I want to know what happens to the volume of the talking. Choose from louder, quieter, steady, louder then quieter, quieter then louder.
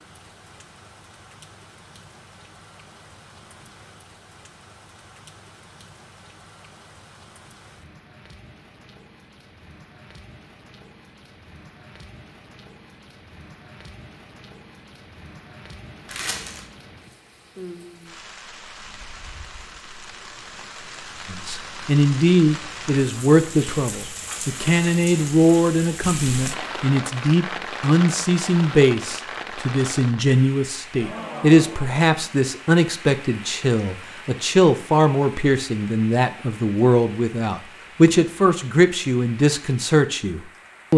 steady.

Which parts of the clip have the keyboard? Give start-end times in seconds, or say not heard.
not heard.